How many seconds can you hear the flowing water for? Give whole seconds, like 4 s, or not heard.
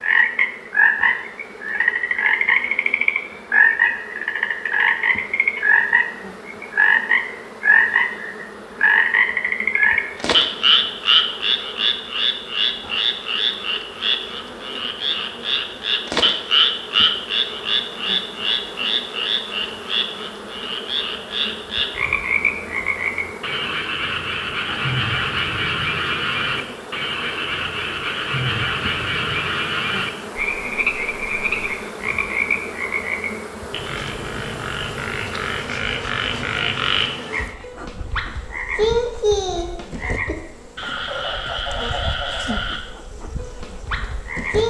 not heard.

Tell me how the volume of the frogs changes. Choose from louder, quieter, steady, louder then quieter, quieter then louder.
quieter.